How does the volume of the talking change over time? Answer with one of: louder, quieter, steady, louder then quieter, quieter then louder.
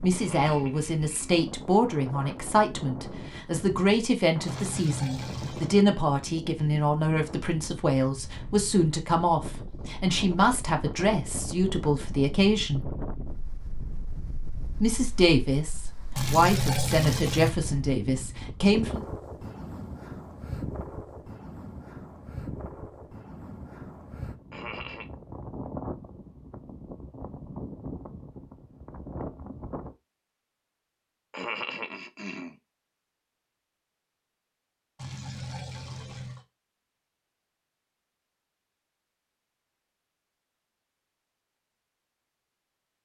steady.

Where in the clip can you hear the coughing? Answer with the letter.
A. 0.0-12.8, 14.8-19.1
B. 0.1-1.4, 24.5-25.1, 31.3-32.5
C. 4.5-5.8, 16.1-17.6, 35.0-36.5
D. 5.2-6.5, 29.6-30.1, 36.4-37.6
B.